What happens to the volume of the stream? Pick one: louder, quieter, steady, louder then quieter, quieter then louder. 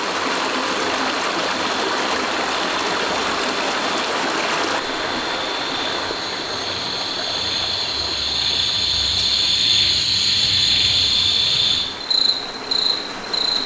quieter.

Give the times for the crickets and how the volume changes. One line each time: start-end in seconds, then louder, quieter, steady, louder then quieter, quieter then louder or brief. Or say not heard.
0.0-13.6 louder.